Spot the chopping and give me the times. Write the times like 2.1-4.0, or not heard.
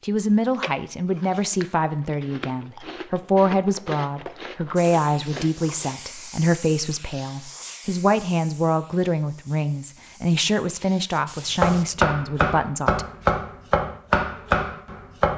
11.6-15.3.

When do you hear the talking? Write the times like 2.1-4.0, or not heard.
0.0-13.1.